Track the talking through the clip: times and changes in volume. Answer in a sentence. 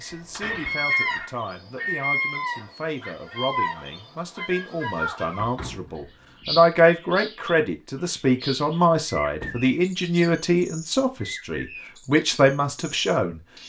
You can hear the talking from 0.0 to 13.4 s, getting louder.